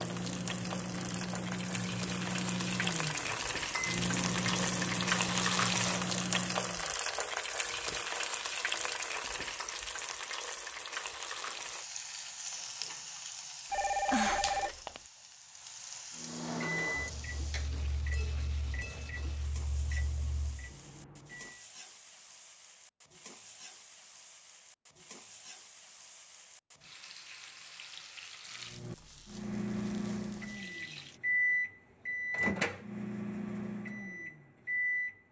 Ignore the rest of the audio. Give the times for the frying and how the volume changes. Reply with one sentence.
You can hear the frying from 0.0 to 31.2 s, getting quieter.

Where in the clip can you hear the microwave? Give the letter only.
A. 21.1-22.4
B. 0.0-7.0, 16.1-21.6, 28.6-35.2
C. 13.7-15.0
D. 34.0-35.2
B.